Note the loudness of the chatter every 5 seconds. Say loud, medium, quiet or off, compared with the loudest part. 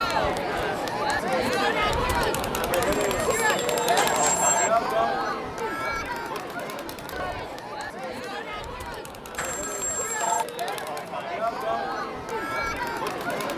loud, medium, medium.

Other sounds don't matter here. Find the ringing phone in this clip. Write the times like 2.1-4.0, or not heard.
2.9-4.7, 9.3-10.4.